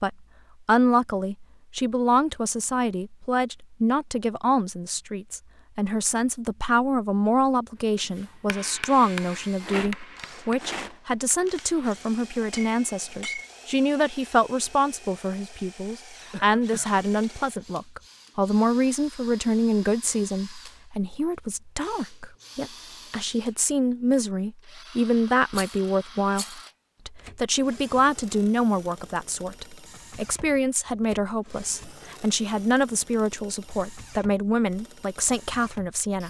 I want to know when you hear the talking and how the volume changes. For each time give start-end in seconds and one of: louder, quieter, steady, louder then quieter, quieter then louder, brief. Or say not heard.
0.0-36.2 steady.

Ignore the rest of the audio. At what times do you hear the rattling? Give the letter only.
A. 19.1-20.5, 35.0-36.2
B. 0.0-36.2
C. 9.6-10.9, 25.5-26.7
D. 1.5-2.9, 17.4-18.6
C.